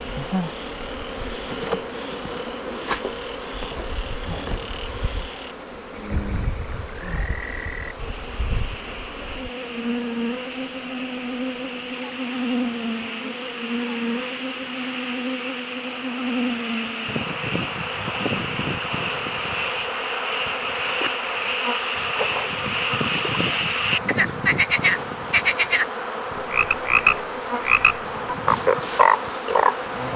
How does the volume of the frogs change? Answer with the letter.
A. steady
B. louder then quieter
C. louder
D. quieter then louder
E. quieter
C.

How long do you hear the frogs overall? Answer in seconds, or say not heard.
30 s.